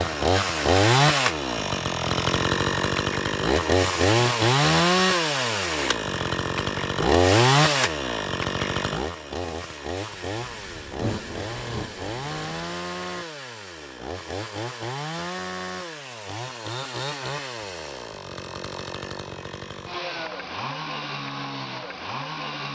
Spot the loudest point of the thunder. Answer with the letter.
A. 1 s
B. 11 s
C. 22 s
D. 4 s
B.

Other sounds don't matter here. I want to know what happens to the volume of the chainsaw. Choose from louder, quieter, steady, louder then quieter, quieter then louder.
quieter.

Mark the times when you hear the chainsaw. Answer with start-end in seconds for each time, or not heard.
0.0-22.7.